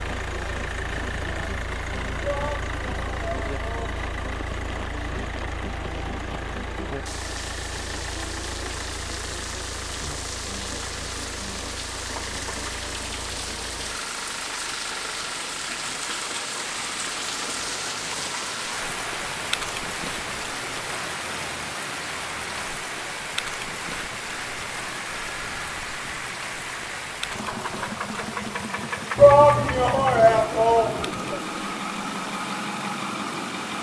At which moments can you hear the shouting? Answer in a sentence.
You can hear the shouting from 2.2 to 4.0 s and from 29.1 to 31.4 s.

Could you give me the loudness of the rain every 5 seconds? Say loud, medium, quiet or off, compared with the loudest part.
medium, medium, loud, loud, loud, medium, medium.